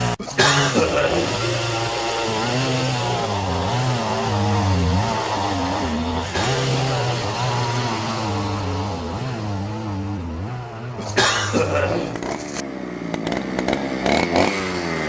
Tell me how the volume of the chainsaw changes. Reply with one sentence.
The volume of the chainsaw goes down, then up.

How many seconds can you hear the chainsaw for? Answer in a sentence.
The chainsaw can be heard for 15 seconds in total.